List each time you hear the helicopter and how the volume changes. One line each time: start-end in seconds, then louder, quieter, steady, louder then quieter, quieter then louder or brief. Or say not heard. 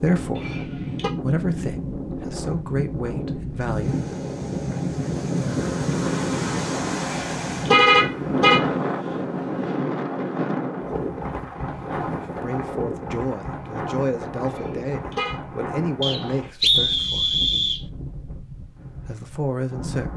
not heard.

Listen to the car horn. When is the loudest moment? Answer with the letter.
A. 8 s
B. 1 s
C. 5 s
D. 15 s
A.